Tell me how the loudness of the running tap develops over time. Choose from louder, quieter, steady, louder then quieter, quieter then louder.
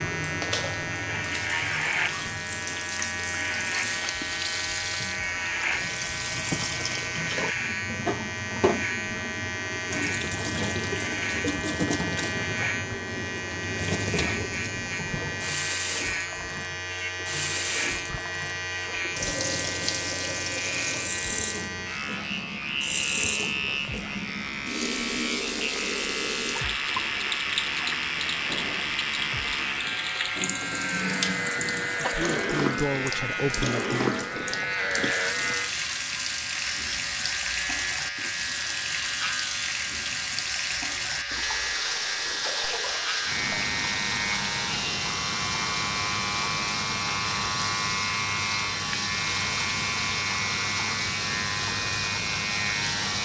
steady.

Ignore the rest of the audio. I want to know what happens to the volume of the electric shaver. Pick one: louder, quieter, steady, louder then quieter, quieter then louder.
steady.